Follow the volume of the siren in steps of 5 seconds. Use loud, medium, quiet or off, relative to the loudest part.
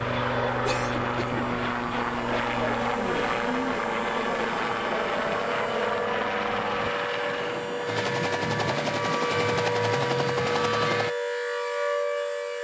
medium, loud, loud.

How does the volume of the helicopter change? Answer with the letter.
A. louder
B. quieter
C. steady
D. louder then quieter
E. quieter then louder
C.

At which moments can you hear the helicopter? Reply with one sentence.
The helicopter can be heard from 0.0 to 11.1 s.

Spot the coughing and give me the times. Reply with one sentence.
You can hear the coughing from 0.7 to 1.4 s.